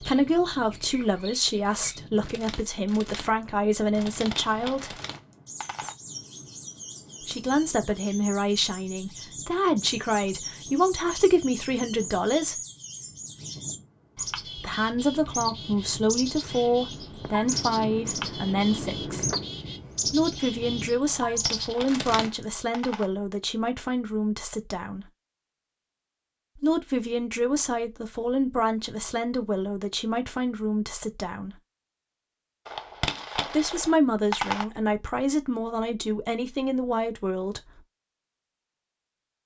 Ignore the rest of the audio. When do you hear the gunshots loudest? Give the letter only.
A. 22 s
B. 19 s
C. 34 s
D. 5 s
C.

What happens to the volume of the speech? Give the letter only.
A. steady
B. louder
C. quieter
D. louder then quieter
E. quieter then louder
A.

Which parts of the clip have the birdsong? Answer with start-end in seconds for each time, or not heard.
0.0-22.3.